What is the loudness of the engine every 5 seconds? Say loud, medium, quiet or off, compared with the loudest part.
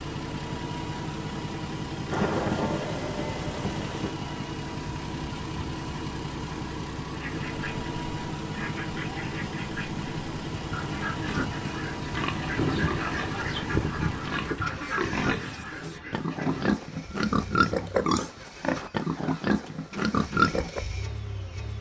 loud, loud, loud, quiet, medium.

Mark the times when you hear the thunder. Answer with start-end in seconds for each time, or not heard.
2.1-4.1.